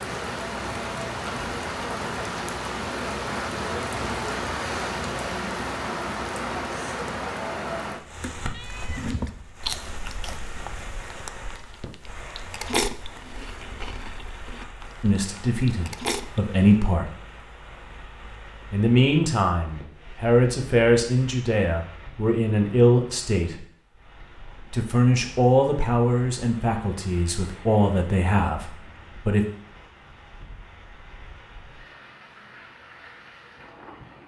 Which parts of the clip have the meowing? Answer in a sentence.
You can hear the meowing from 8.5 to 9.6 s.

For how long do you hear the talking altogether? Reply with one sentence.
You can hear the talking for 12 seconds altogether.